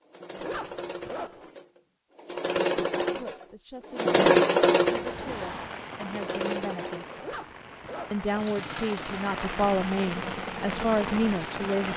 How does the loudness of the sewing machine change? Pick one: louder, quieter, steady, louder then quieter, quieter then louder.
louder then quieter.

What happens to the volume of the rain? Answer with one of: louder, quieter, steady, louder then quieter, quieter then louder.
quieter then louder.